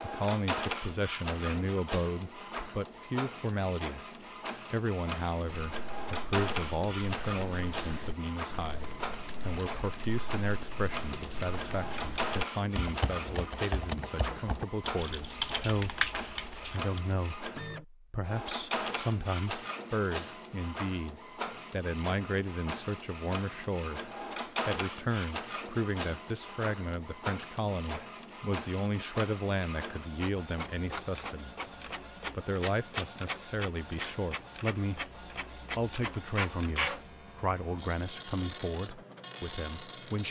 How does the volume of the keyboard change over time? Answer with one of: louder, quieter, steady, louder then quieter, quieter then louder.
louder.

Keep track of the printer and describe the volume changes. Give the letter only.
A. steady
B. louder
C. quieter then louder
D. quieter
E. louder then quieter
A.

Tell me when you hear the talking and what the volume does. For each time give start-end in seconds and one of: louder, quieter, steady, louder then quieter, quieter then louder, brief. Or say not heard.
0.0-40.2 steady.